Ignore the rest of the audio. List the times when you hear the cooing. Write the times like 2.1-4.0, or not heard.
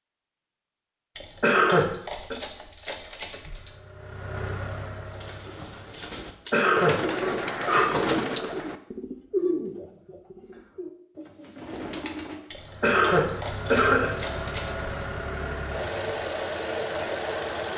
5.1-12.7.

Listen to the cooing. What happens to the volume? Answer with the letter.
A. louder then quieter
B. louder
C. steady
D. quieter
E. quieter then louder
A.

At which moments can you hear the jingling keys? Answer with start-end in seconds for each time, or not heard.
1.1-3.8, 6.5-8.1, 12.5-15.1.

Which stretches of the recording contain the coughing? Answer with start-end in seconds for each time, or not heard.
1.4-2.4, 6.5-7.0, 12.8-14.2.